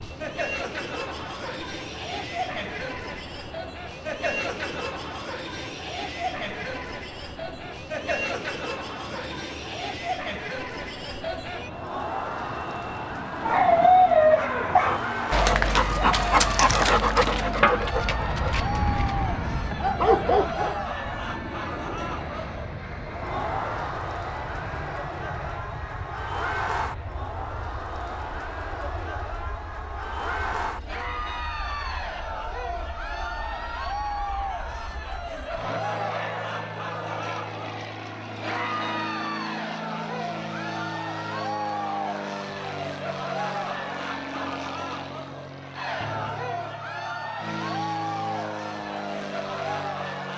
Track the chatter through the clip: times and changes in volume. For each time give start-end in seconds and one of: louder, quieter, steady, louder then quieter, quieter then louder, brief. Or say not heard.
0.0-50.3 steady.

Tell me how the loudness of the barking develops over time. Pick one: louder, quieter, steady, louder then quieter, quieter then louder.
quieter then louder.